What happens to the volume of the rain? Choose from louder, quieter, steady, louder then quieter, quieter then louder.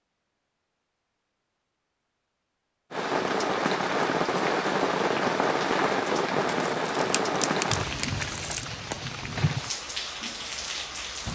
quieter.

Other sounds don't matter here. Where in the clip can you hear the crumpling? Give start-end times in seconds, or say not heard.
6.5-8.7.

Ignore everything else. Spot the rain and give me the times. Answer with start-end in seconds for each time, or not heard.
2.9-11.3.